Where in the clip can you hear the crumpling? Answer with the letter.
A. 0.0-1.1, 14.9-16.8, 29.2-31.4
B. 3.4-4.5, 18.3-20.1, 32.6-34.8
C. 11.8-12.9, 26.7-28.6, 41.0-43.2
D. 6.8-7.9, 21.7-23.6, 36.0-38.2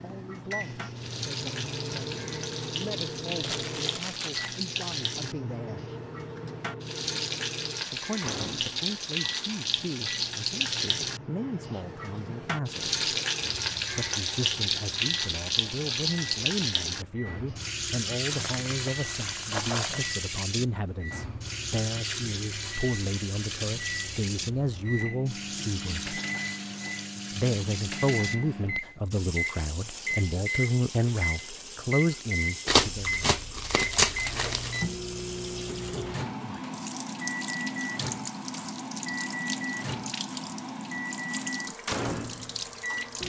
B.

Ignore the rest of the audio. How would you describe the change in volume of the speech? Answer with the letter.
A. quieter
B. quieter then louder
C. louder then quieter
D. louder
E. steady
D.